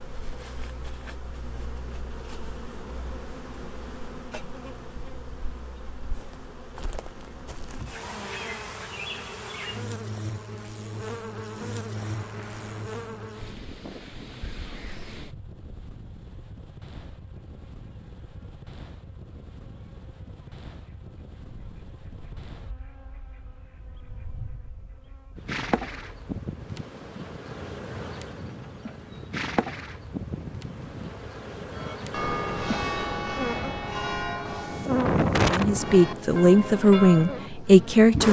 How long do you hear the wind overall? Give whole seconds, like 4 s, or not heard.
26 s.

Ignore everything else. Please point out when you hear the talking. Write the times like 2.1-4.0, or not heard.
35.5-38.2.